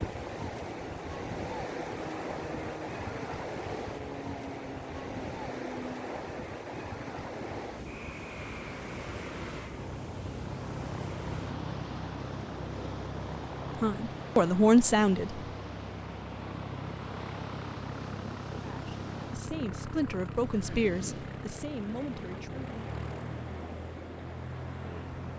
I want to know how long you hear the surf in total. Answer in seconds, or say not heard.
25 s.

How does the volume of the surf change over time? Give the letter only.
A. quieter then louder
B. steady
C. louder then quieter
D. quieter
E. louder
D.